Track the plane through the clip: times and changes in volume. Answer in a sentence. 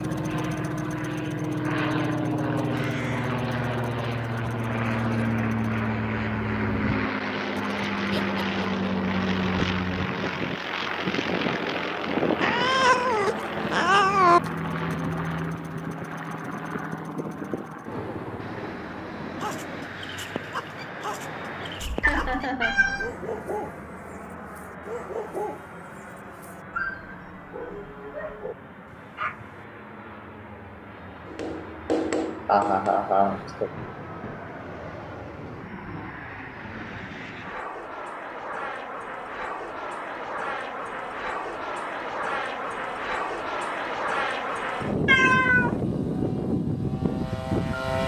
You can hear the plane from 0.0 to 48.0 s, getting quieter then louder.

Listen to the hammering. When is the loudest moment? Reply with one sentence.
The volume of the hammering peaks at 32 seconds.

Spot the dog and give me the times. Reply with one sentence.
The dog can be heard from 19.4 to 23.9 s, from 24.6 to 25.7 s and from 26.4 to 29.6 s.